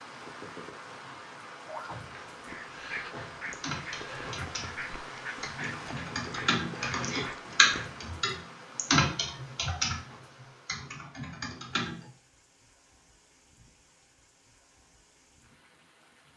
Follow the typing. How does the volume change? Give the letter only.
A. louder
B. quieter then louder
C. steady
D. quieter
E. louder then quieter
E.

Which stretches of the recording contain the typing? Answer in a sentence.
You can hear the typing from 3.5 to 12.1 s.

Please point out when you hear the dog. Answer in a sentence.
You can hear the dog from 1.6 to 7.9 s.